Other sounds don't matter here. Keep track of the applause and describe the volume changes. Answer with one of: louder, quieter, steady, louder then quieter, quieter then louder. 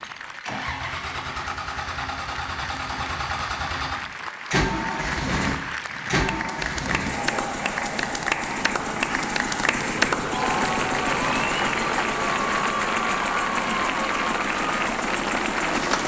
louder.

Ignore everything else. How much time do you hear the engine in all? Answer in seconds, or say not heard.
16 s.